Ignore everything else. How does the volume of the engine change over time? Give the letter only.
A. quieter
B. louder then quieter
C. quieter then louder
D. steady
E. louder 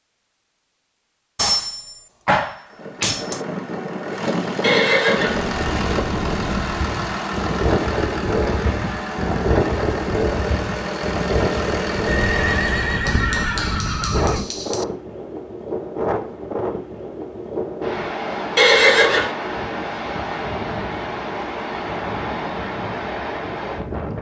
D.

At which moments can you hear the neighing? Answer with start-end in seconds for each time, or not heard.
4.6-5.4, 12.1-14.4, 18.6-19.4.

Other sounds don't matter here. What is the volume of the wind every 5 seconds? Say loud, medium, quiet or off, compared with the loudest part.
off, loud, loud, loud, loud.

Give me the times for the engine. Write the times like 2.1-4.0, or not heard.
2.6-13.1.